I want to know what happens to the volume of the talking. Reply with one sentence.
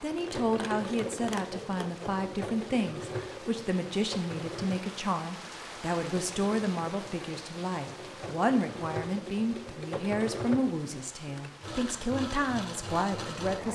The loudness of the talking stays about the same.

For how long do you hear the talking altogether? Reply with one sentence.
You can hear the talking for 14 seconds altogether.